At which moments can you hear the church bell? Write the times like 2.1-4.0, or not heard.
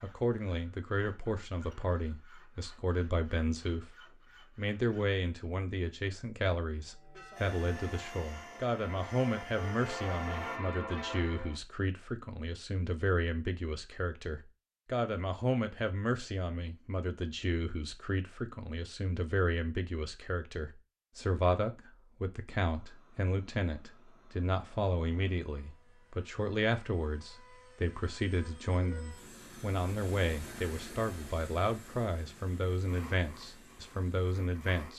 6.8-11.6.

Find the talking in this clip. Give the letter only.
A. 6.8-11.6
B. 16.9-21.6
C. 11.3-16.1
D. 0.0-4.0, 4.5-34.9
D.